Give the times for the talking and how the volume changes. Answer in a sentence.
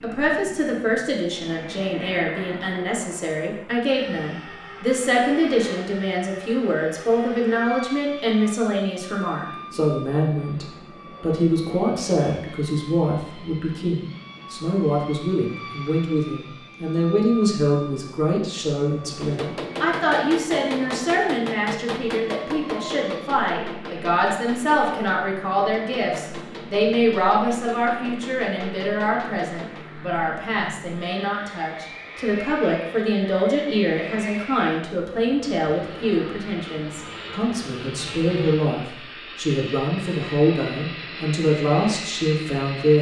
The talking can be heard from 0.0 to 42.9 s, at a steady volume.